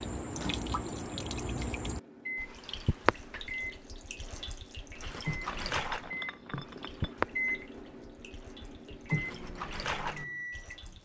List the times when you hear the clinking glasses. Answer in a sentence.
The clinking glasses can be heard from 5.7 to 7.2 s.